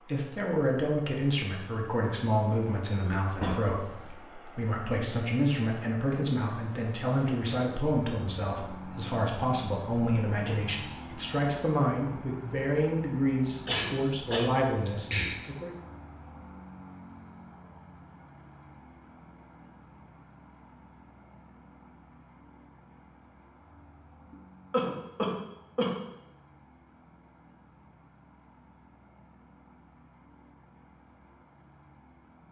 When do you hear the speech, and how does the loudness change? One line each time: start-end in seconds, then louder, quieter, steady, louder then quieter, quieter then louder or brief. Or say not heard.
0.0-15.8 steady.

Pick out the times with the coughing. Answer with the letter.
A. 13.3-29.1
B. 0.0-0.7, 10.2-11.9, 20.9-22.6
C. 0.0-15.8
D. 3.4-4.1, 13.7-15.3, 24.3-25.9
D.